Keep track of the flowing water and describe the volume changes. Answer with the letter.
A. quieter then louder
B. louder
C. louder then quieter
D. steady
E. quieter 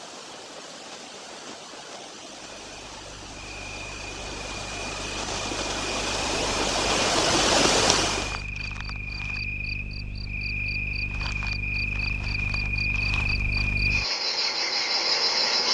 B.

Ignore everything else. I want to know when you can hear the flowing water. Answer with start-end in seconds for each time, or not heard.
0.0-8.4.